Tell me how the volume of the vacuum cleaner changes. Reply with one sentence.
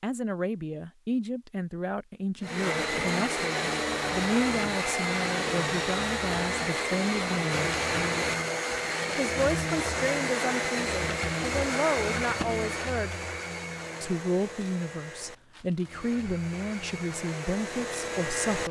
The loudness of the vacuum cleaner goes down.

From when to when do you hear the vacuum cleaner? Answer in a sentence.
You can hear the vacuum cleaner from 2.4 to 18.6 s.